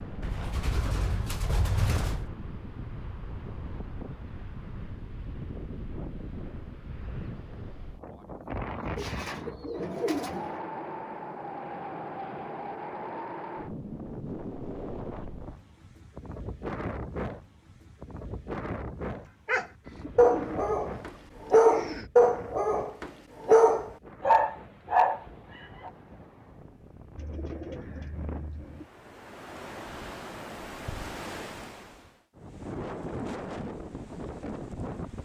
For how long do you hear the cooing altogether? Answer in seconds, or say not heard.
8 s.